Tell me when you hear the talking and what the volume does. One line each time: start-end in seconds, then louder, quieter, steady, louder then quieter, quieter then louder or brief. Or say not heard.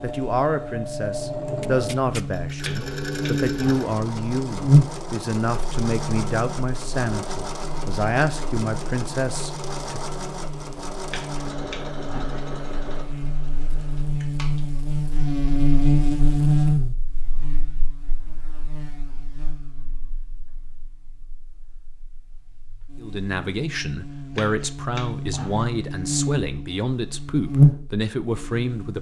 0.0-10.0 steady
23.0-28.9 steady.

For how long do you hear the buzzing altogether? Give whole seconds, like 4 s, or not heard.
29 s.